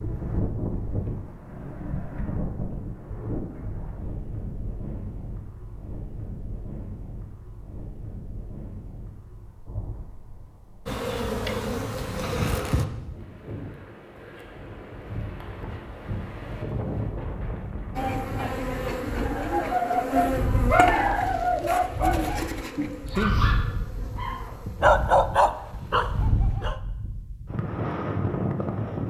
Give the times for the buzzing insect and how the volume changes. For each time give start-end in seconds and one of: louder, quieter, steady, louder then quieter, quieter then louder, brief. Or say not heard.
10.8-12.8 brief
17.9-26.2 quieter.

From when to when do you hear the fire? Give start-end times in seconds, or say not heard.
not heard.